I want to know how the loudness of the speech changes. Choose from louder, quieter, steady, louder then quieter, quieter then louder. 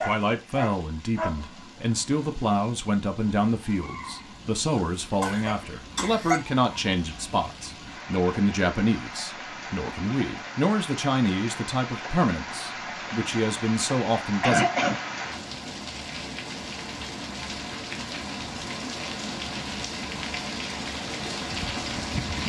steady.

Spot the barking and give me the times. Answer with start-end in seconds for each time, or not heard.
0.0-1.4.